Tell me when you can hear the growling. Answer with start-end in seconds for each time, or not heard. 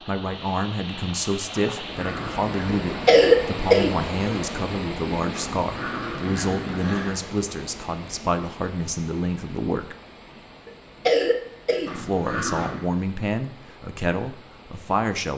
1.6-3.1, 5.3-7.2, 11.8-12.8.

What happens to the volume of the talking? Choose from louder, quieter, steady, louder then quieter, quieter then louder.
steady.